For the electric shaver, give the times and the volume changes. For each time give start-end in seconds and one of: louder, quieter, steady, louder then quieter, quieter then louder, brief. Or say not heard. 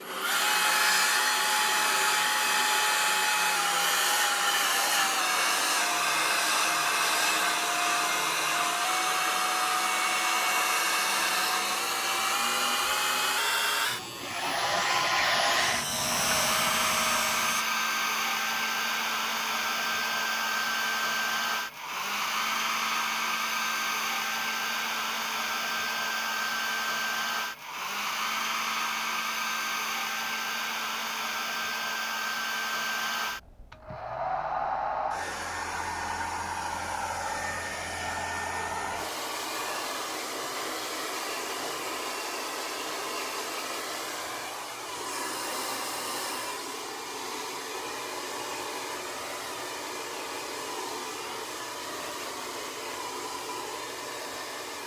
11.2-17.6 louder.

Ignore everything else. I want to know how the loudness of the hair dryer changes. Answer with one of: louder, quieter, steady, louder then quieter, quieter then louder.
quieter.